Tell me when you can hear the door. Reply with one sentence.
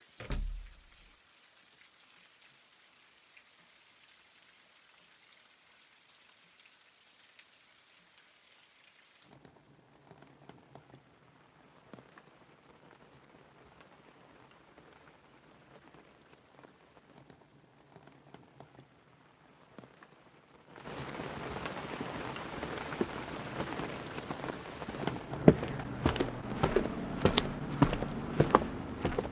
You can hear the door from 0.2 to 1.1 s.